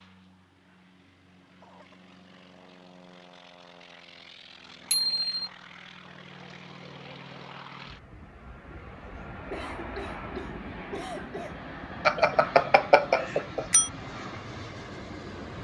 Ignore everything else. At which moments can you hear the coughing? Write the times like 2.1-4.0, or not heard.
1.6-2.1, 9.5-11.6.